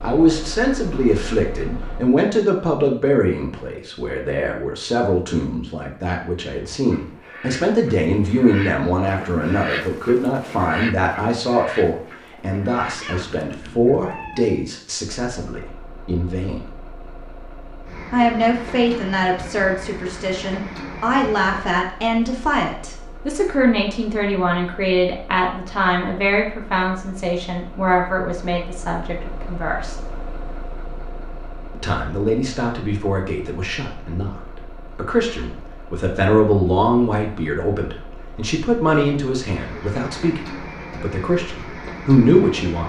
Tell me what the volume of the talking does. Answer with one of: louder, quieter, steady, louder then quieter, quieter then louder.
steady.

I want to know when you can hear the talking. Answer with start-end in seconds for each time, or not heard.
0.0-16.6, 18.1-29.9, 31.8-42.8.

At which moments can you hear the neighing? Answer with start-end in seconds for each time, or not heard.
not heard.